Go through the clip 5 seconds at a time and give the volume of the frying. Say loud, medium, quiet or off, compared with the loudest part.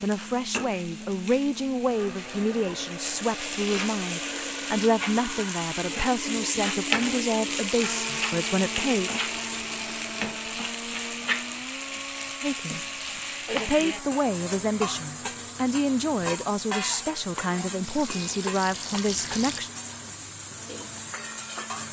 medium, loud, loud, medium, medium.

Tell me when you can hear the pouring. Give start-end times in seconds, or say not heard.
17.8-19.6.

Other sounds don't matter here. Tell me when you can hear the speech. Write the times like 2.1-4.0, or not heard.
0.0-9.1, 12.4-19.7.